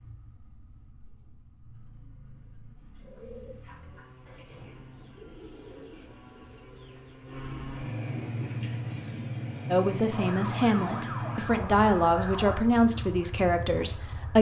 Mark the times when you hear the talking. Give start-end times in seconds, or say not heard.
9.7-14.3.